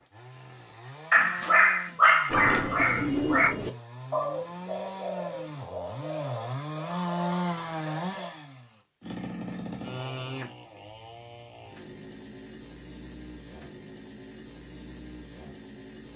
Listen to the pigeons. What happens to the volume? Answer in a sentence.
The volume of the pigeons goes down.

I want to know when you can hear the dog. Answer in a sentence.
The dog can be heard from 1.1 to 3.5 s.